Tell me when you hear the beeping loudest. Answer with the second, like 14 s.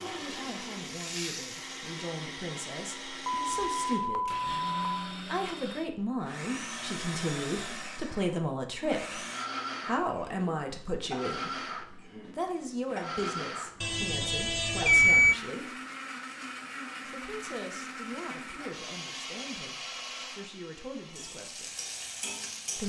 15 s.